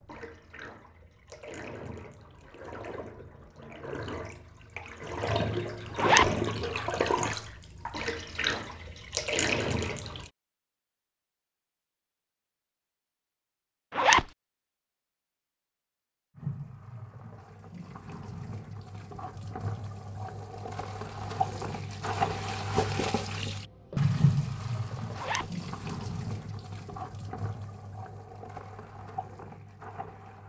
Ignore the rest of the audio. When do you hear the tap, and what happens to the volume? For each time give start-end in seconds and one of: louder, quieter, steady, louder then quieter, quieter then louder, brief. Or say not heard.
0.0-10.3 louder
16.4-30.4 louder then quieter.